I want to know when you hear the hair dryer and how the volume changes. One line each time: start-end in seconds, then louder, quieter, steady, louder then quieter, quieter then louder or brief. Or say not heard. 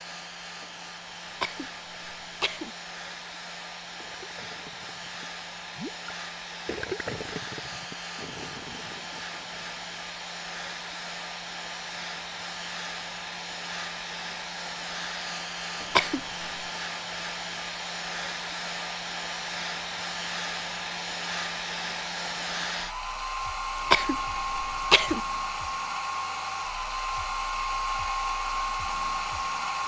0.0-29.8 louder.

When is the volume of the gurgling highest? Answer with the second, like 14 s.
7 s.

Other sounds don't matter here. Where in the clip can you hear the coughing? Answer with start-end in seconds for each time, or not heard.
1.2-2.7, 15.8-16.4, 23.8-25.2.